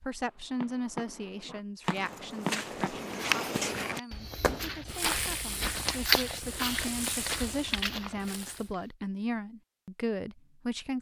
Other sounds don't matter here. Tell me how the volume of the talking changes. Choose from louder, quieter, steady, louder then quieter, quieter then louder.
quieter then louder.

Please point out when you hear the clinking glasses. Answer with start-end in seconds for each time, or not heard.
not heard.